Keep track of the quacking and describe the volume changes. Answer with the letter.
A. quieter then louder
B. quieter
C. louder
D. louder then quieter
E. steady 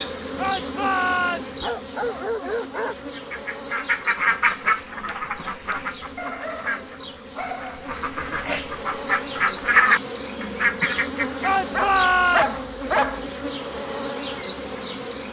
A.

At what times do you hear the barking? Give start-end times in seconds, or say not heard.
1.6-3.0, 6.2-8.0, 11.7-13.2.